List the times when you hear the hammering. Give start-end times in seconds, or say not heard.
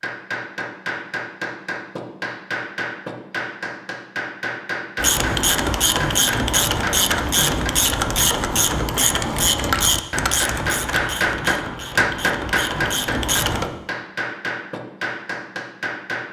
0.0-7.7, 9.9-16.2.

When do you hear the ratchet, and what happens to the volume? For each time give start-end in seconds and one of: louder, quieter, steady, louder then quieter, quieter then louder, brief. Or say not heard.
5.0-13.7 quieter.